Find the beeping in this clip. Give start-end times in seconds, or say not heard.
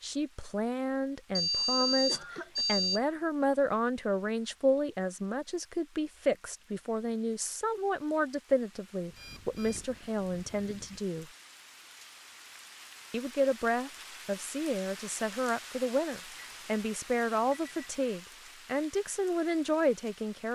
1.4-3.0, 9.1-11.0, 16.4-18.0.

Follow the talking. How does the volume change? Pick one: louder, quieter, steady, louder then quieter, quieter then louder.
steady.